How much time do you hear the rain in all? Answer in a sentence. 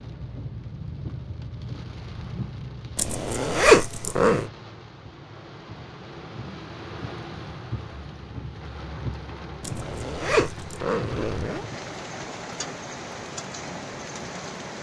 You can hear the rain for 15 seconds altogether.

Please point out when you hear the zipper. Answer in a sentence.
You can hear the zipper from 3.0 to 4.5 s and from 9.6 to 11.7 s.